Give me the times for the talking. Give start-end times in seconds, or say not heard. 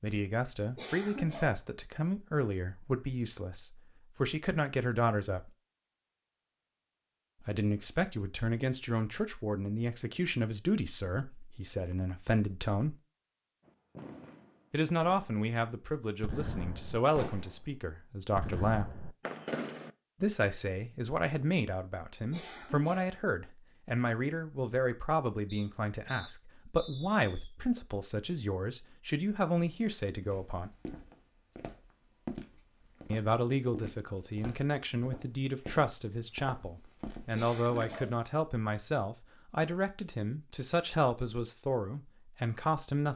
0.0-5.5, 7.4-12.9, 14.7-18.9, 20.2-30.7, 33.1-43.1.